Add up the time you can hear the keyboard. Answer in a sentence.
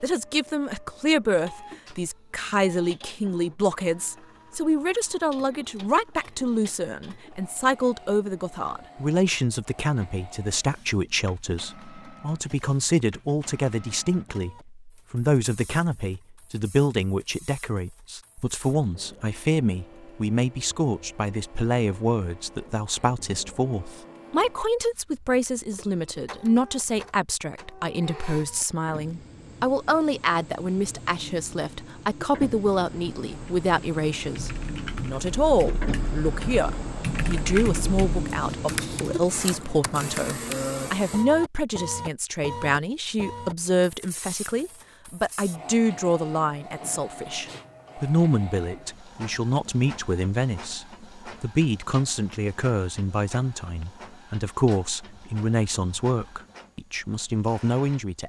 The keyboard can be heard for 8 seconds in total.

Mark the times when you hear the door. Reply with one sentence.
The door can't be heard in this clip.